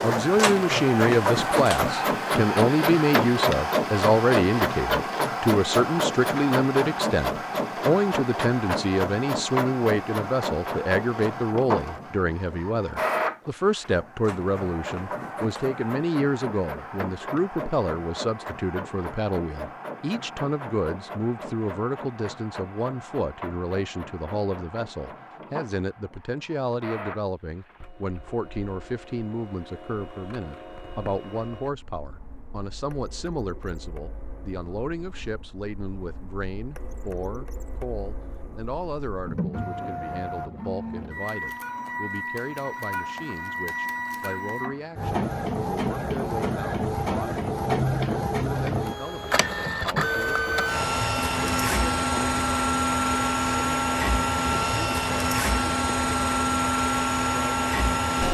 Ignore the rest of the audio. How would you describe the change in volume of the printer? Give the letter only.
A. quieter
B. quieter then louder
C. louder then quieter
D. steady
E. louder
B.